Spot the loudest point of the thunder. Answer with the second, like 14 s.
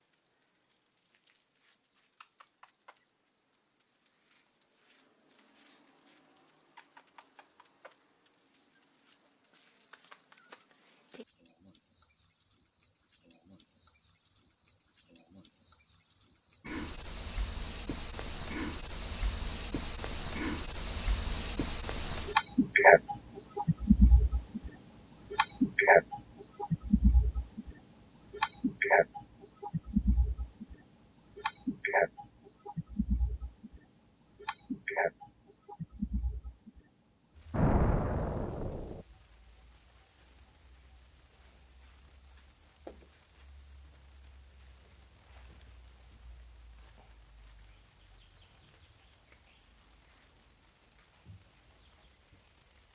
38 s.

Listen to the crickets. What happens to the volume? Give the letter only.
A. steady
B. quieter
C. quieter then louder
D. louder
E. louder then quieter
E.